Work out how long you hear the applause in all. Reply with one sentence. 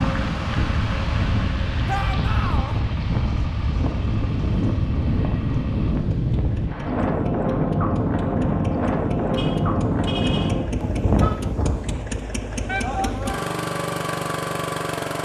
You can't hear the applause here.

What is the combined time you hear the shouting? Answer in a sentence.
The shouting can be heard for 2 seconds in total.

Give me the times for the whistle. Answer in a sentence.
The whistle can't be heard in this clip.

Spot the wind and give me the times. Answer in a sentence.
The wind can be heard from 0.0 to 12.2 s.